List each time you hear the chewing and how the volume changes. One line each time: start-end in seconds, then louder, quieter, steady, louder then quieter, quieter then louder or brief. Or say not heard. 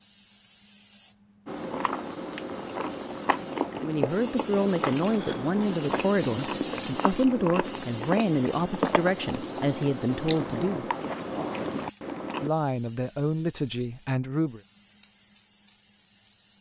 1.4-12.5 steady.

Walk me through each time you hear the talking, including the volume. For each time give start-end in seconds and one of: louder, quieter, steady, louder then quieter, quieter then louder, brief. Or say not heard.
3.8-10.9 steady
12.4-14.6 brief.